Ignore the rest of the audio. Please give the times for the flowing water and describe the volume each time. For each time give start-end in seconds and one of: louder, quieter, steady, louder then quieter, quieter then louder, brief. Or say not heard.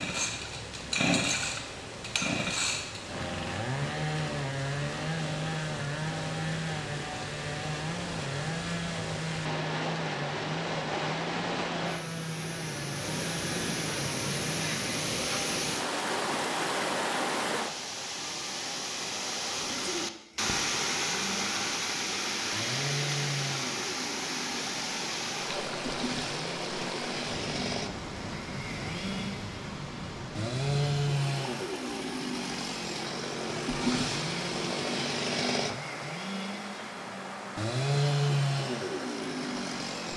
0.0-40.1 louder then quieter.